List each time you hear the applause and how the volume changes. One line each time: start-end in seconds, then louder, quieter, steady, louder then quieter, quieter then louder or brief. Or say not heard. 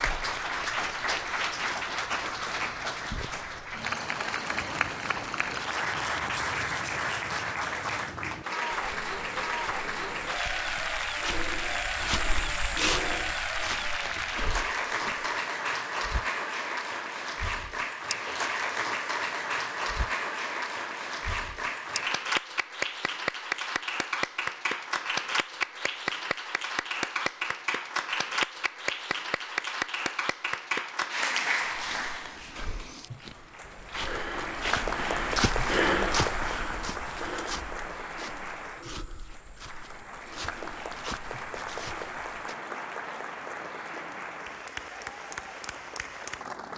0.0-46.7 quieter.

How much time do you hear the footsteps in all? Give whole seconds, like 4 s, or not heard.
22 s.